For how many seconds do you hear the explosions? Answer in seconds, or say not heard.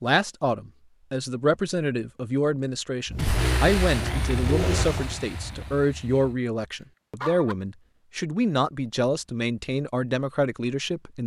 3 s.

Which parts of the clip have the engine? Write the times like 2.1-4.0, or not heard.
3.1-5.2.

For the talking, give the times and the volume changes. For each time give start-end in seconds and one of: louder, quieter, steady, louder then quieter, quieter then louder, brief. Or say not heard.
0.0-11.2 steady.